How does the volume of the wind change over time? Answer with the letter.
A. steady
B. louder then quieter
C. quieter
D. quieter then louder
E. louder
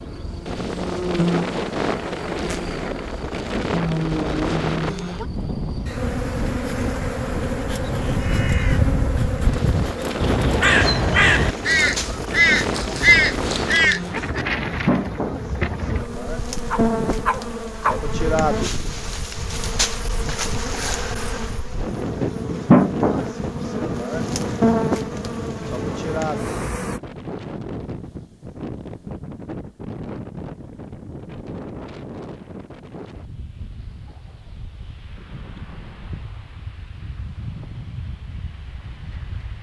C.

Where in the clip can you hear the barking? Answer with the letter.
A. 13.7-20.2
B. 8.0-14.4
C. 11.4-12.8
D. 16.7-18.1
D.